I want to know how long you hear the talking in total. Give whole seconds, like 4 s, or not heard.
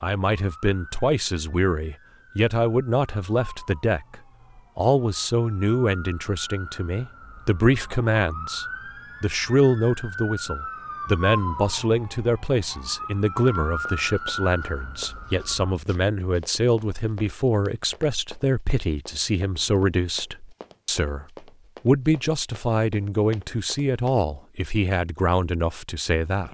26 s.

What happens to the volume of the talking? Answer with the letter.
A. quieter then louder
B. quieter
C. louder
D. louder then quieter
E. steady
E.